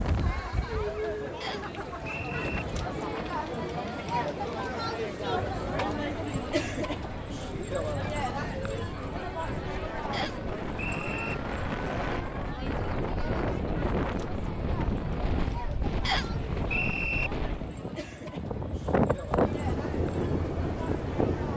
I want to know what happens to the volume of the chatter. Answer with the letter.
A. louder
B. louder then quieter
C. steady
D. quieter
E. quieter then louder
D.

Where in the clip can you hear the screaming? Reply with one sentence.
You can't hear the screaming here.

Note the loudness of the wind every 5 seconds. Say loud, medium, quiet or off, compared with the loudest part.
medium, medium, loud, loud, loud.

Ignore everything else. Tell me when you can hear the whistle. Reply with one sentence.
You can hear the whistle from 1.4 to 2.6 s, from 10.1 to 11.3 s and from 16.1 to 17.3 s.